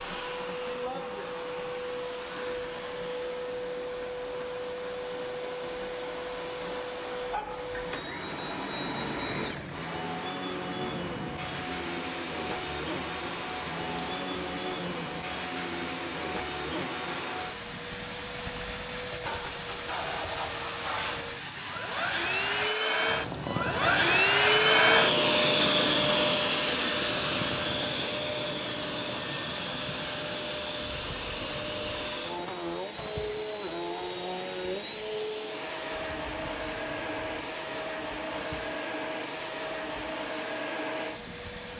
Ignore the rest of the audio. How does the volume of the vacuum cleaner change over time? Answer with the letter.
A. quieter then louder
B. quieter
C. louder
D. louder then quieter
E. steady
D.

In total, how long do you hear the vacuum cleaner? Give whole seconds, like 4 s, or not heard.
42 s.